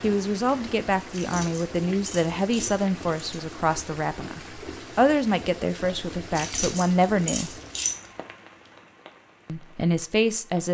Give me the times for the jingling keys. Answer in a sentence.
You can hear the jingling keys from 1.1 to 3.4 s and from 6.3 to 8.0 s.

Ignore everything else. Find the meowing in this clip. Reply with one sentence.
You can't hear the meowing here.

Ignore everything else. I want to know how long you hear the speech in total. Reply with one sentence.
The speech can be heard for 9 seconds in total.